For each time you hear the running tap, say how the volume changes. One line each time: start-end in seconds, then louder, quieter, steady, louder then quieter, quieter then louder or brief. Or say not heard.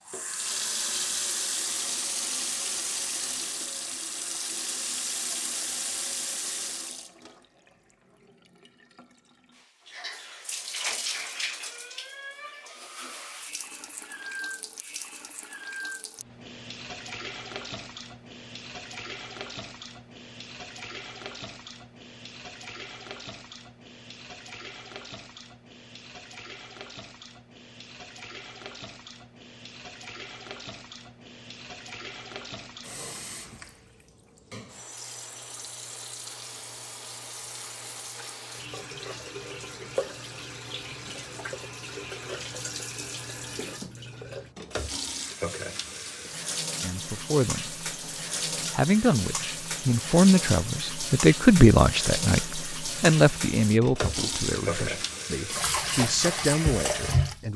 0.1-57.5 quieter then louder.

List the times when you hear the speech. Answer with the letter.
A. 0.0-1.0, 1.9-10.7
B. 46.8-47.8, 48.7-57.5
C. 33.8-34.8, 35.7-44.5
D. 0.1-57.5
B.